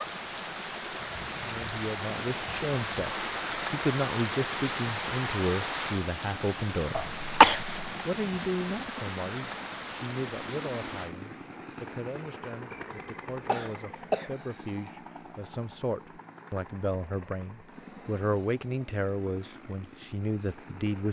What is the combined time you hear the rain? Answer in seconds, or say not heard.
11 s.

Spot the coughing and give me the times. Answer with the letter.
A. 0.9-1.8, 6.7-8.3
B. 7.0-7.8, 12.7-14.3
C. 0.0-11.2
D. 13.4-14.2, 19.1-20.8
B.